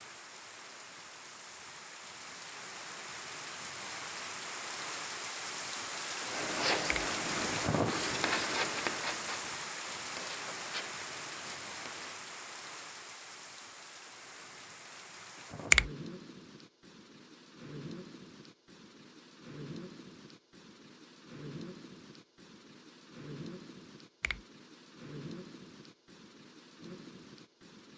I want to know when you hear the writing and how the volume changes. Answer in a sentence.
You can hear the writing from 6.2 to 12.2 s, getting quieter.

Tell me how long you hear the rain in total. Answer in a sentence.
You can hear the rain for 28 seconds altogether.